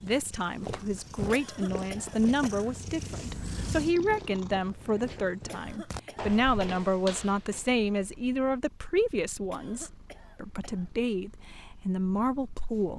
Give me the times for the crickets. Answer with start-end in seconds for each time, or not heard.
not heard.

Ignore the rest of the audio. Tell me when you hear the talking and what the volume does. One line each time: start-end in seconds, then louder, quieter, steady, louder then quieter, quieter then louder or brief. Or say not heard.
0.0-12.9 steady.